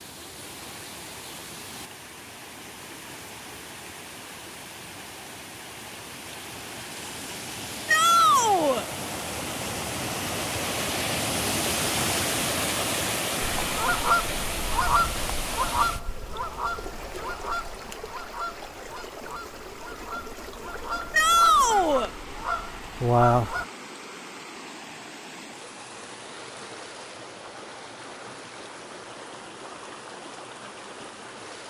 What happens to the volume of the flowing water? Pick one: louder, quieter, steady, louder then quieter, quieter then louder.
louder then quieter.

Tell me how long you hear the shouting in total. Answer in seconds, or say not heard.
2 s.